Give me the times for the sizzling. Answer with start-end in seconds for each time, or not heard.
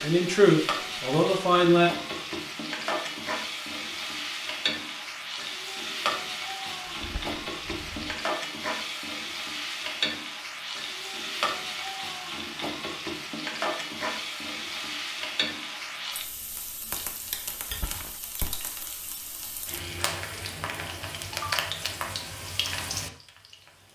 0.0-23.9.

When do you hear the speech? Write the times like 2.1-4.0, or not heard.
0.0-1.9.